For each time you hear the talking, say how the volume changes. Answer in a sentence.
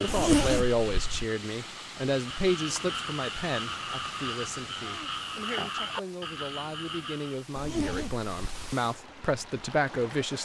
You can hear the talking from 0.0 to 10.4 s, getting quieter then louder.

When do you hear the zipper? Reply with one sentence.
The zipper can be heard from 0.1 to 1.2 s and from 7.5 to 8.8 s.